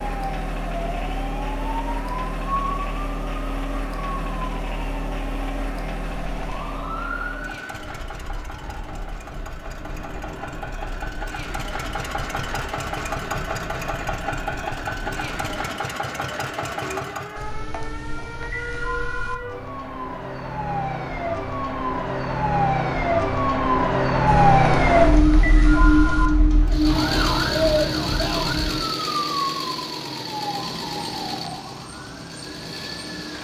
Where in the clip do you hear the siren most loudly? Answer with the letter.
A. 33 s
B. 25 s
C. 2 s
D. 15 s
B.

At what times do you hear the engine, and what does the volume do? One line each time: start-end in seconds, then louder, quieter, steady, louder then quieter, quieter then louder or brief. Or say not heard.
0.0-17.5 quieter then louder
26.6-33.3 quieter.